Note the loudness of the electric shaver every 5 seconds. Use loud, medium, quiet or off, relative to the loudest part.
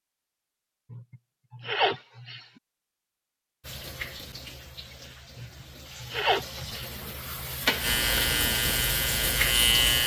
off, loud.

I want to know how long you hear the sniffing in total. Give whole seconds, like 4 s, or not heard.
3 s.